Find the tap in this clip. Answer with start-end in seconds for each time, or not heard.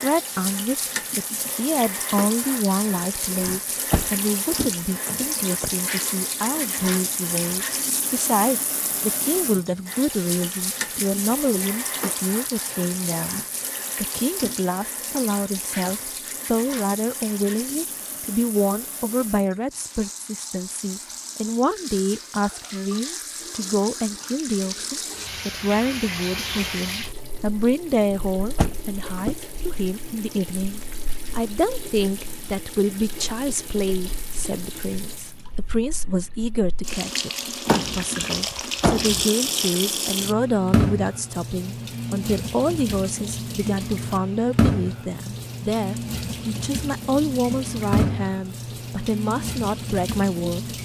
0.0-50.8.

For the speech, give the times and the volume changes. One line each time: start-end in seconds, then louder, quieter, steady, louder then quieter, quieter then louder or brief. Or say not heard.
0.0-50.6 steady.